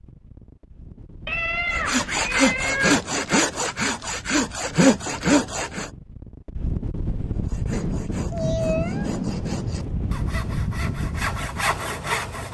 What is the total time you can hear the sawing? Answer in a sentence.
The sawing can be heard for 9 seconds in total.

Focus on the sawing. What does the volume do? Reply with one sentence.
The volume of the sawing goes down, then up.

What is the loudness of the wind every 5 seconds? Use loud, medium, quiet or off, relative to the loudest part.
quiet, loud, loud.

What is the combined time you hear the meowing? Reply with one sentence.
The meowing can be heard for 3 seconds in total.